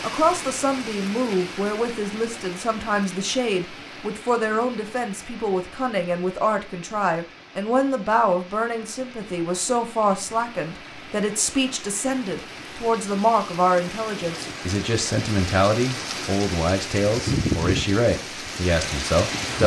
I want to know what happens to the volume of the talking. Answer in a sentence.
The loudness of the talking stays about the same.